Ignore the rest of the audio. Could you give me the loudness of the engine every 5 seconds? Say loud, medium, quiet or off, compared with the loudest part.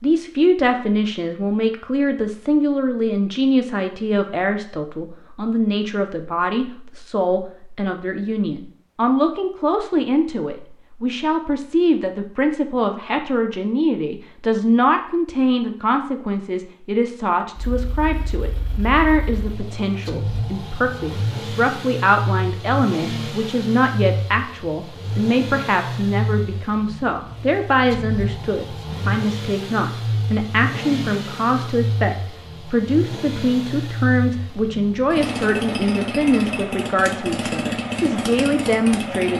off, off, off, quiet, loud, loud, loud, loud.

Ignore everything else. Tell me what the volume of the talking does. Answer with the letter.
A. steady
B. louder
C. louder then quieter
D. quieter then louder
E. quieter
A.